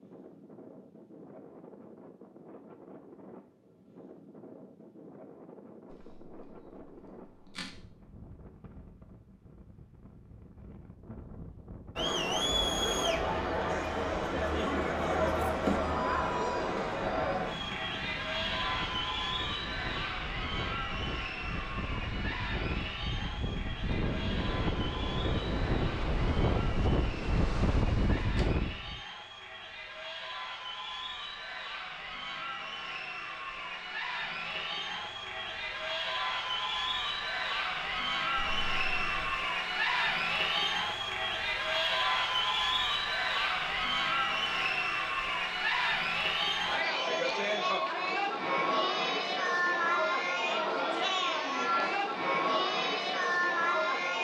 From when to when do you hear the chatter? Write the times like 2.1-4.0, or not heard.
11.9-54.1.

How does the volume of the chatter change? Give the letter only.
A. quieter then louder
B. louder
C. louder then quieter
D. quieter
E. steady
A.